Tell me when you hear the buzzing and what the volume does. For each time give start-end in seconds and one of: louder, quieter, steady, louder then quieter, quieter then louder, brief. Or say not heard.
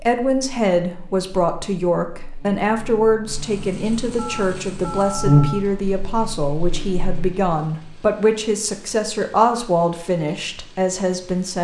0.0-7.5 louder then quieter.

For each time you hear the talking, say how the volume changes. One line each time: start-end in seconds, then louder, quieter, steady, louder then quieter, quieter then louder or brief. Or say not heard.
0.0-11.5 steady.